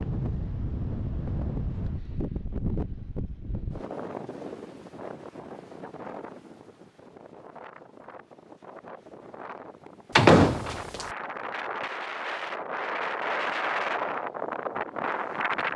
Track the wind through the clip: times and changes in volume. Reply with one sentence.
You can hear the wind from 0.0 to 15.7 s, getting quieter then louder.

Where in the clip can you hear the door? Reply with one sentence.
You can hear the door from 10.2 to 11.1 s.